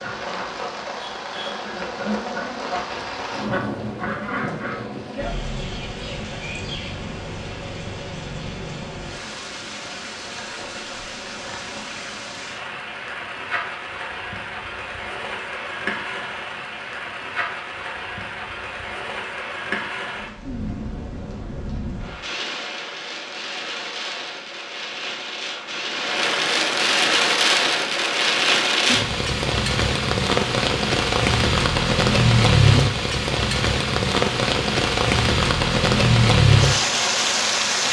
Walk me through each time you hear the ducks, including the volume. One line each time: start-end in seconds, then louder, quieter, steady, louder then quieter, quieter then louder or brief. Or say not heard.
0.0-4.8 louder.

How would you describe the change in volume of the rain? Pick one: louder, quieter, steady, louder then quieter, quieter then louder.
louder.